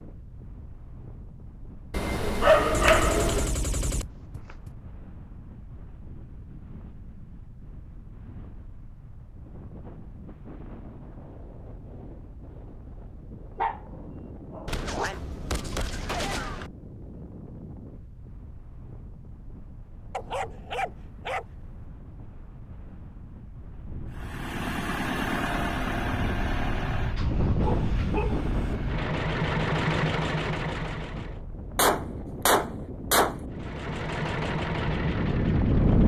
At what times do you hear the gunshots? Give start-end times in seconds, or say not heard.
2.7-4.7, 14.7-16.7, 31.8-33.4.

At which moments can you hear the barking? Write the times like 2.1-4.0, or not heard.
1.9-3.5, 13.6-15.2, 20.1-21.9, 27.6-28.8.